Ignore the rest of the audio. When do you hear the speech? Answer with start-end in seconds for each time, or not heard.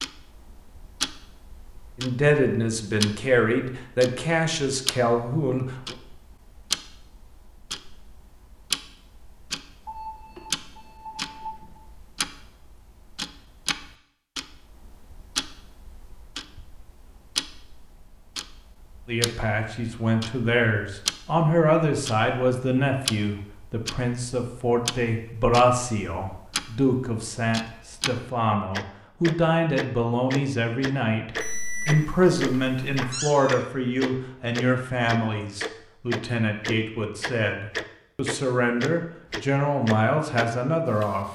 1.9-6.0, 19.1-41.3.